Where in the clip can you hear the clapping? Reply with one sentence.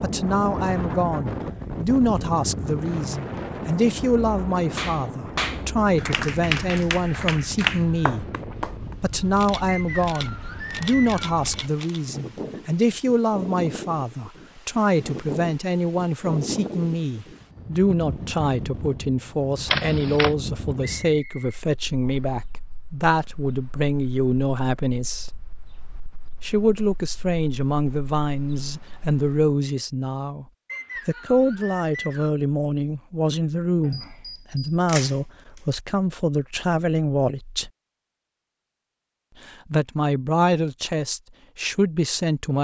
You can hear the clapping from 4.8 to 8.9 s.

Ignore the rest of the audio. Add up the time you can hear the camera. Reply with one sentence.
You can hear the camera for 5 seconds altogether.